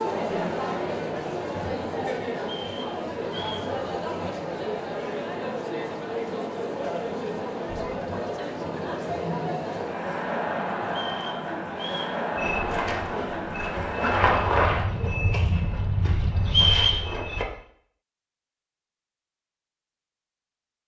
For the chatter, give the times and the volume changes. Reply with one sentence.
You can hear the chatter from 0.0 to 14.8 s, at a steady volume.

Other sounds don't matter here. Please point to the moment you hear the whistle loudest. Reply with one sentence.
The loudest moment of the whistle is at 17 seconds.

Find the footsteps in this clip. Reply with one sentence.
You can hear the footsteps from 12.3 to 17.4 s.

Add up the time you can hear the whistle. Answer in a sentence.
The whistle can be heard for 4 seconds in total.